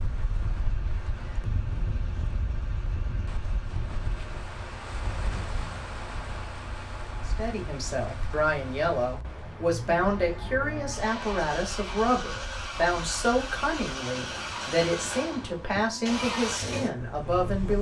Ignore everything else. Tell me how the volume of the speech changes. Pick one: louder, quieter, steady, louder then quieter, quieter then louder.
steady.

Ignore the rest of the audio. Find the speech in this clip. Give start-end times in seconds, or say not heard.
7.3-17.7.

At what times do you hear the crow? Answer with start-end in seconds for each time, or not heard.
not heard.